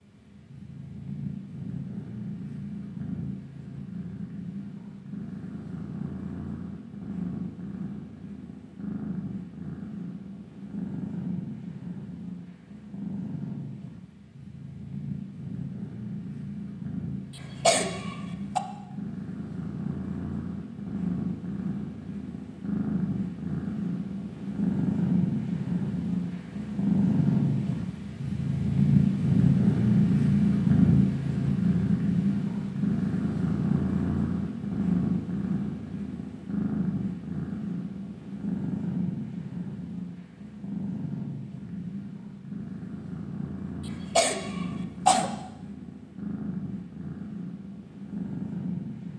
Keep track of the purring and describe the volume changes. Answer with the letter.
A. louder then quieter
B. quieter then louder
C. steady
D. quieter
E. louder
A.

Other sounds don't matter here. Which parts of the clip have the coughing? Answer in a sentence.
You can hear the coughing from 17.4 to 18.6 s and from 43.9 to 45.3 s.